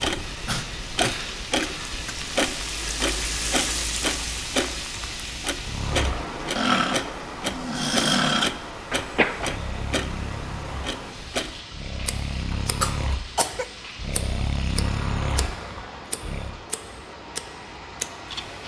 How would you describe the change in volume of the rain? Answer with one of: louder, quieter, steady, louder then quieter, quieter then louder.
quieter.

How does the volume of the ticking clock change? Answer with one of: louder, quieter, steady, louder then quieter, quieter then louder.
quieter.